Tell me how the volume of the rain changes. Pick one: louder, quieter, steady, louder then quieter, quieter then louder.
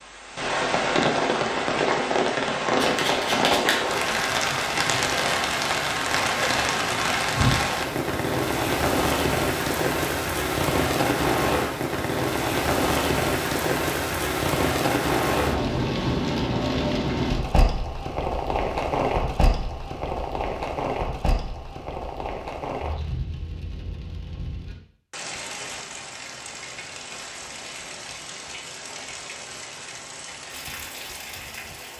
quieter.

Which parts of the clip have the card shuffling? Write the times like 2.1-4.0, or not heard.
2.8-4.0.